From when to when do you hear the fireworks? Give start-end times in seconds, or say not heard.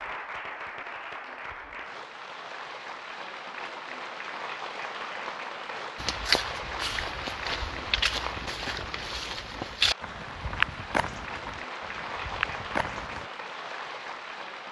not heard.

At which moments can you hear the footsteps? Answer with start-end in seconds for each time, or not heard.
6.0-13.2.